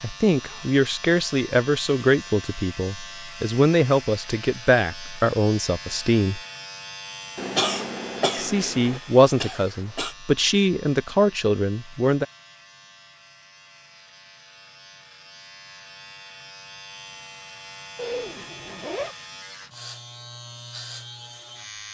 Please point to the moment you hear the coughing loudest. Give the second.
8 s.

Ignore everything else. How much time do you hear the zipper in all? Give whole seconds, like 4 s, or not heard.
2 s.